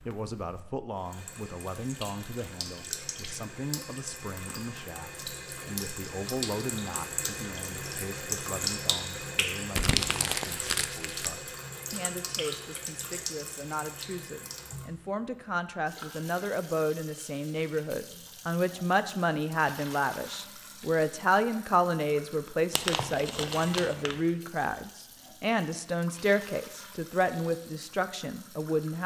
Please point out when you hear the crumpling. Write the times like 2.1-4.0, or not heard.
9.8-11.3, 22.7-24.2.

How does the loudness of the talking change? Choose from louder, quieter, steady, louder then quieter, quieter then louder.
louder.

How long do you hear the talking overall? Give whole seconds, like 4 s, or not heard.
29 s.